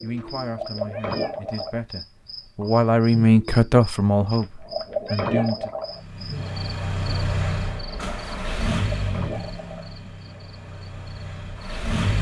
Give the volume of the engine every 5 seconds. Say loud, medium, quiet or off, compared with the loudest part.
off, loud, loud.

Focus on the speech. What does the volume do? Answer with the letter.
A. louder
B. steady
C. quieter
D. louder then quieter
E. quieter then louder
D.